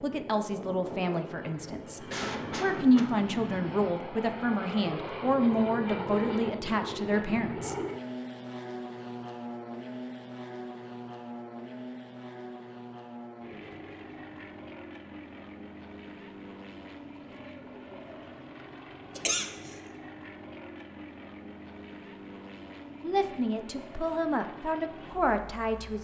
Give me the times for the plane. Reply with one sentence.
You can hear the plane from 0.0 to 25.9 s.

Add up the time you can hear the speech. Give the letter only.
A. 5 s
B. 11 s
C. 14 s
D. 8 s
B.